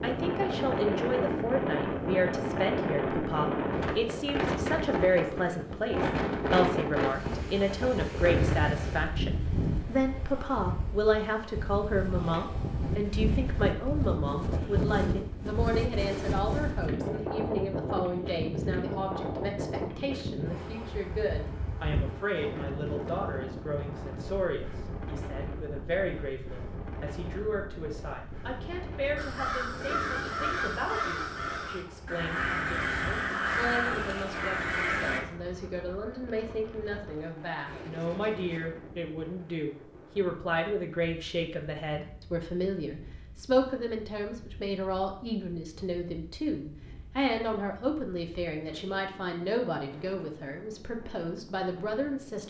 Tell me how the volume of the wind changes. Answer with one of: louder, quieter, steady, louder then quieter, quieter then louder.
quieter.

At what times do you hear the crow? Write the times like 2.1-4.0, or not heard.
29.1-35.2.